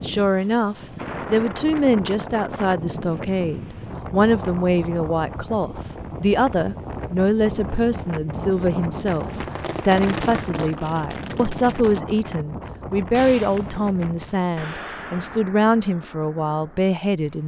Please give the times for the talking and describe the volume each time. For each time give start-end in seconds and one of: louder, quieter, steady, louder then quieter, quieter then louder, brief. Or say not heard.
0.0-17.4 steady.